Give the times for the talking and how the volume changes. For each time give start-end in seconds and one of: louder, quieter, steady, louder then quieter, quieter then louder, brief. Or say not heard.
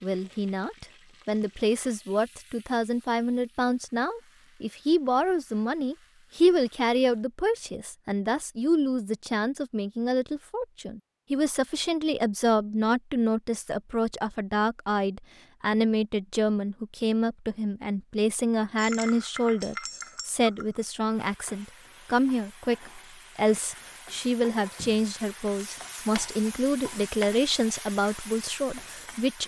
0.0-29.4 steady.